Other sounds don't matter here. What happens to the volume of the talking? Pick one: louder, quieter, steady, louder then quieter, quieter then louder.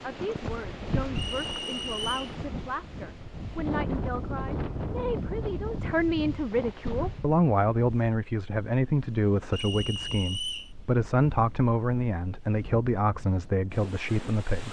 louder.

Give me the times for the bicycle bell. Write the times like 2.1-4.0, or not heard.
not heard.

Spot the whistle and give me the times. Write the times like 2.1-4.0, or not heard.
1.1-2.4, 9.5-10.7.